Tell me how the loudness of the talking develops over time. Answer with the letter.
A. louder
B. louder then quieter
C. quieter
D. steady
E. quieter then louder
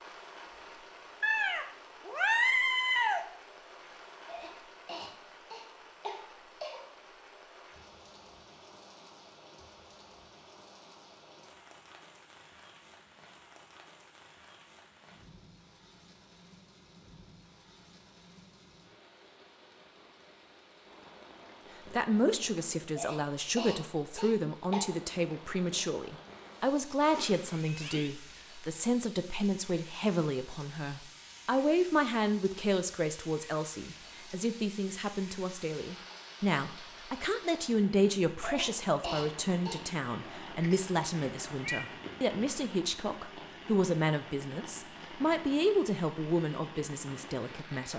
D.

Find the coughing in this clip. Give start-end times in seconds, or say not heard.
4.2-6.8, 22.9-24.9, 38.4-39.8.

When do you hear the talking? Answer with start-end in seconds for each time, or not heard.
21.9-47.9.